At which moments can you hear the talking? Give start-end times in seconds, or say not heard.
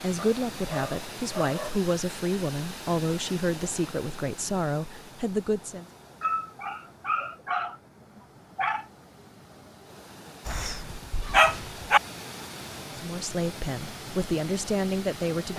0.0-5.8, 12.8-15.5.